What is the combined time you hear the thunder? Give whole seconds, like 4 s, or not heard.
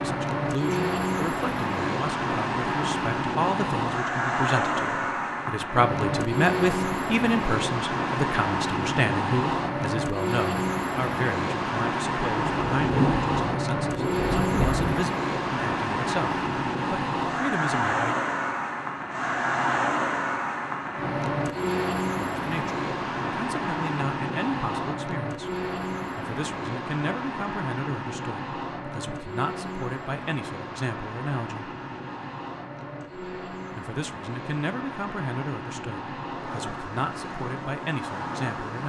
3 s.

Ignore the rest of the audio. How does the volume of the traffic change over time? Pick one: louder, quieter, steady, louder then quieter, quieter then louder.
quieter.